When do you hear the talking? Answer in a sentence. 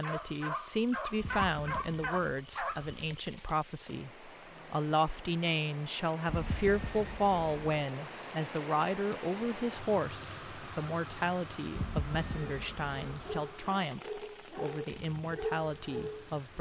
The talking can be heard from 0.0 to 16.5 s.